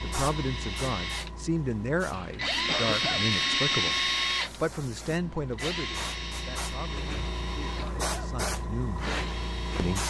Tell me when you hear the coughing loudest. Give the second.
3 s.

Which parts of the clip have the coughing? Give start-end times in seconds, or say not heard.
2.6-3.2, 7.8-8.3.